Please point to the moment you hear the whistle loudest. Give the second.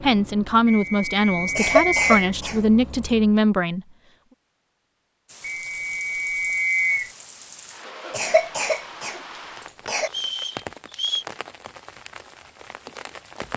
7 s.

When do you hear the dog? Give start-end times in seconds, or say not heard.
not heard.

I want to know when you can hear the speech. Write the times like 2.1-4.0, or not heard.
0.0-3.8.